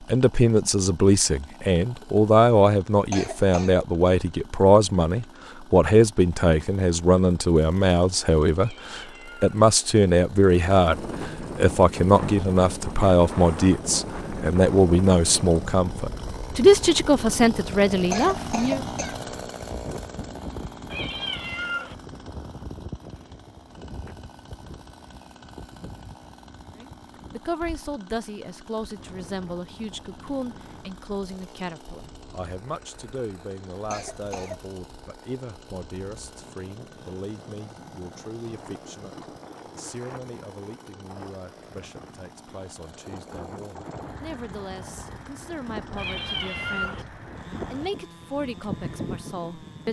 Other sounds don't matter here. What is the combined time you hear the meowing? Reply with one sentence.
You can hear the meowing for 3 seconds altogether.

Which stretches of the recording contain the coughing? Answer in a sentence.
The coughing can be heard from 3.1 to 3.8 s, from 18.1 to 19.2 s and from 33.9 to 34.6 s.